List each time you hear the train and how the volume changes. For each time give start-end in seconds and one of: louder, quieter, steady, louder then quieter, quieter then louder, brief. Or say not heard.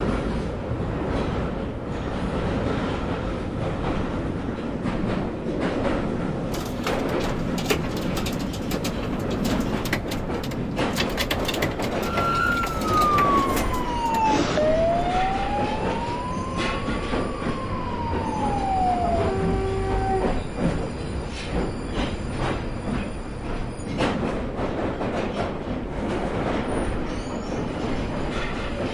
0.0-28.8 steady.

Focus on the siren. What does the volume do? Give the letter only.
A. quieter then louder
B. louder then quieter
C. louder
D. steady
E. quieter
A.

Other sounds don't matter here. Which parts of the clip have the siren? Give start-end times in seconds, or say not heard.
12.0-20.4.